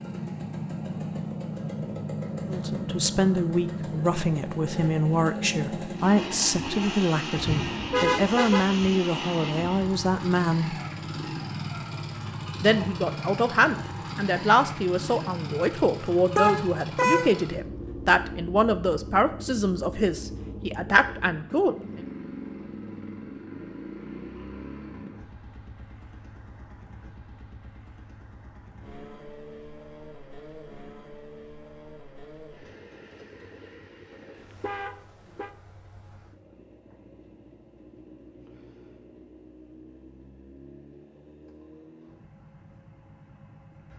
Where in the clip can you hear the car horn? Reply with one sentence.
You can hear the car horn from 7.3 to 8.9 s, from 16.4 to 17.4 s and from 34.3 to 35.5 s.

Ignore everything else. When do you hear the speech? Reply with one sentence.
The speech can be heard from 2.5 to 10.8 s and from 12.6 to 21.8 s.